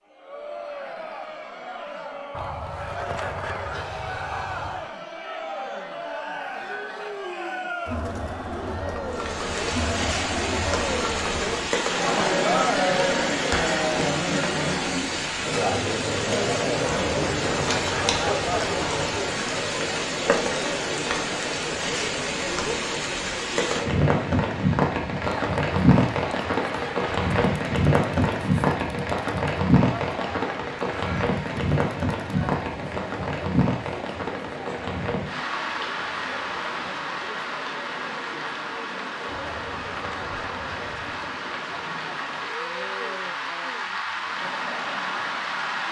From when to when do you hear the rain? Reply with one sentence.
You can hear the rain from 9.1 to 45.8 s.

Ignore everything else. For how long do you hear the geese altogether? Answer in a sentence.
You can hear the geese for 7 seconds altogether.